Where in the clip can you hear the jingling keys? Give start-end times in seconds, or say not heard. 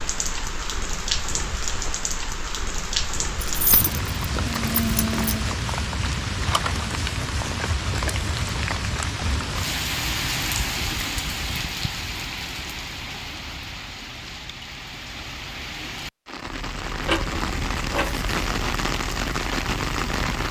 3.4-5.5, 17.0-18.3.